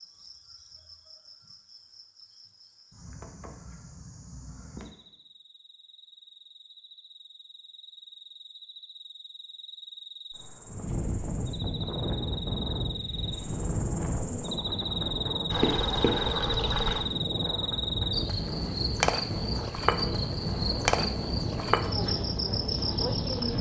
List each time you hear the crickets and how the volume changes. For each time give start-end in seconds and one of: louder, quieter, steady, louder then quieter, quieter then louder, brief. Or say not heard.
0.0-23.5 louder.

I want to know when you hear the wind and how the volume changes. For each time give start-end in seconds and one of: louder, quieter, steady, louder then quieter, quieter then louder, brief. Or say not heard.
10.7-23.5 steady.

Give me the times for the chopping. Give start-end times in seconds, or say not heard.
not heard.